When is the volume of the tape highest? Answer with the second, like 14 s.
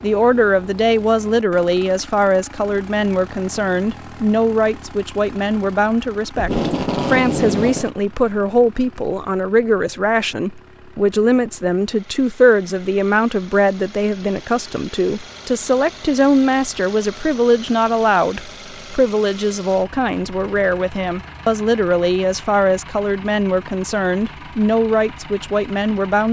7 s.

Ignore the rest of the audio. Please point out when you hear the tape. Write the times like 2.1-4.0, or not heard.
6.3-7.9.